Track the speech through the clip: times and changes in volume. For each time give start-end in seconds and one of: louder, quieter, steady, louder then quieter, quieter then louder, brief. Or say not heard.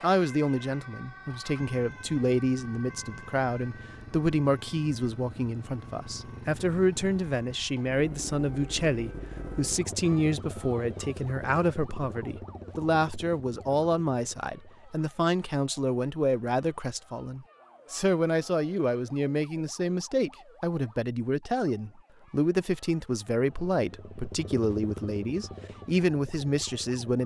0.0-27.2 steady.